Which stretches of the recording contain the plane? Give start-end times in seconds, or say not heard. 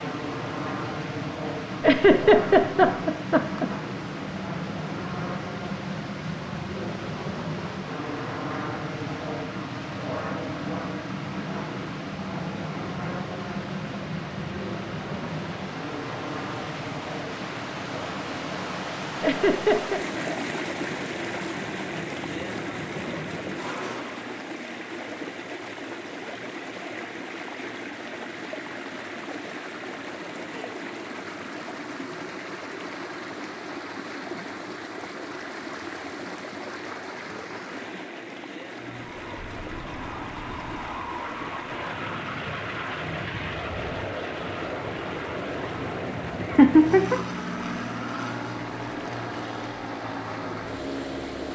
0.0-24.4, 38.8-51.5.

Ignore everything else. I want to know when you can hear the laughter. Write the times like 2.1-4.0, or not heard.
1.8-3.6, 19.2-20.0, 46.4-47.1.